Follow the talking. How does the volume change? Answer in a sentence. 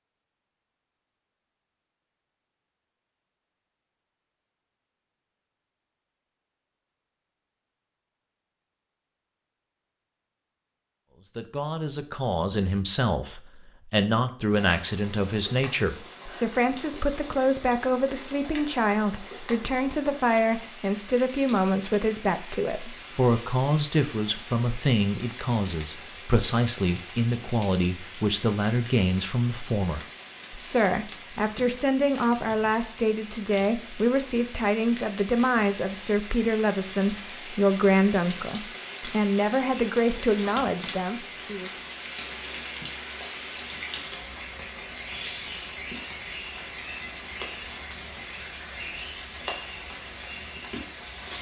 The loudness of the talking stays about the same.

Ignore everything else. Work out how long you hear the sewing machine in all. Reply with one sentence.
You can't hear the sewing machine here.